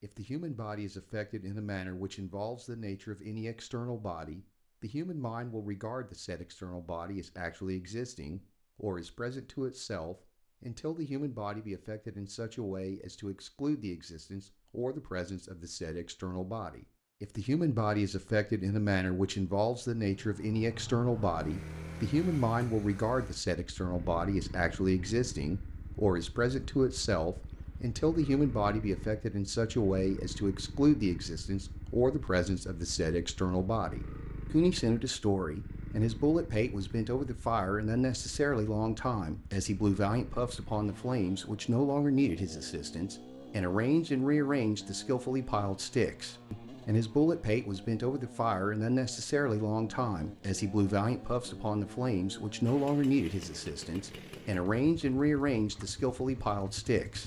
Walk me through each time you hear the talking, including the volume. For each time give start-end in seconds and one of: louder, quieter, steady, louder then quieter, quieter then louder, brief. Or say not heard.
0.0-57.2 louder.